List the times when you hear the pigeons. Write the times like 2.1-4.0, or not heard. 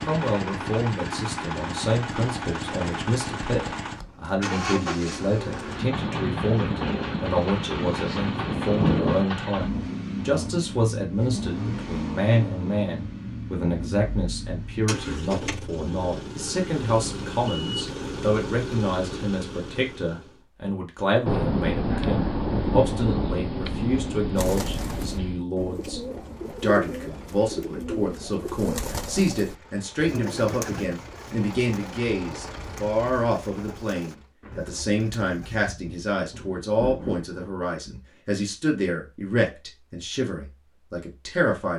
24.4-35.7.